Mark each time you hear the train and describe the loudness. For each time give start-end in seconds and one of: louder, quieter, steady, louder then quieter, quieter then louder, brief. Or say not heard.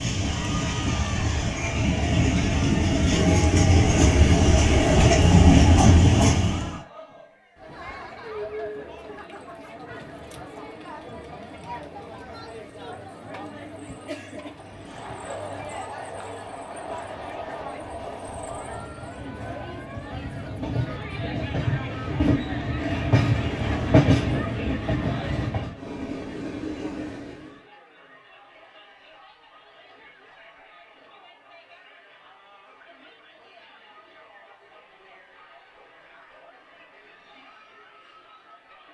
0.0-6.8 louder
14.5-27.6 louder then quieter.